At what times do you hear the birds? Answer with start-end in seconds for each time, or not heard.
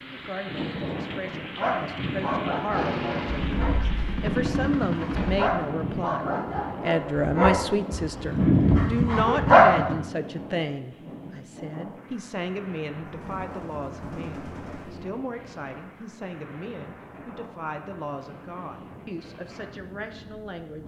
not heard.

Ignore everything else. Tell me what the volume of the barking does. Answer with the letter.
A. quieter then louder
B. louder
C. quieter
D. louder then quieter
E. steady
B.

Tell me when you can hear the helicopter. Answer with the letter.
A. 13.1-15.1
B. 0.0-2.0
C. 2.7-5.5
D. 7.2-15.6
C.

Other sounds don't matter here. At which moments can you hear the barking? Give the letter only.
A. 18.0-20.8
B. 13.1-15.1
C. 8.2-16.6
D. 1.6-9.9
D.